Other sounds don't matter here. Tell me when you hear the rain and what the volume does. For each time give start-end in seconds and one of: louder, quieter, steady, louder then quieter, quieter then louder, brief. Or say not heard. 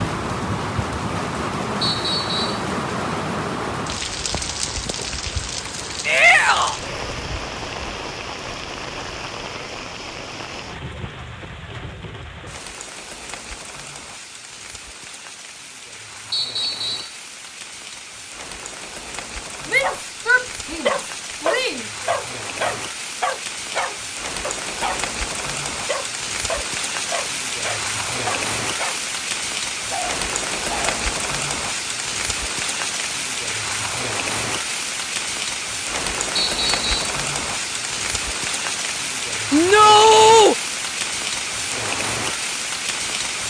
0.0-43.4 quieter then louder.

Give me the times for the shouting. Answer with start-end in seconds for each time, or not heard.
6.0-6.8, 19.6-21.8, 39.5-40.5.